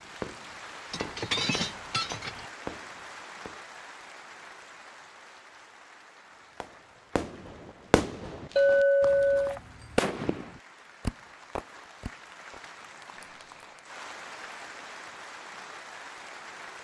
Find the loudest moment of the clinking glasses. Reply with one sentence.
The loudest moment of the clinking glasses is at 9 seconds.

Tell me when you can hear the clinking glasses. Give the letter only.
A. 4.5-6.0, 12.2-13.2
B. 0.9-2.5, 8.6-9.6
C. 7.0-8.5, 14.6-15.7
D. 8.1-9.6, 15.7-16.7
B.